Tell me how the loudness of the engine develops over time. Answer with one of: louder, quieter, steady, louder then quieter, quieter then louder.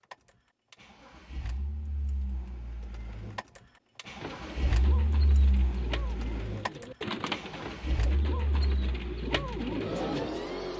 louder.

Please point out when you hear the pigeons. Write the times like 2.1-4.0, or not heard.
4.2-10.3.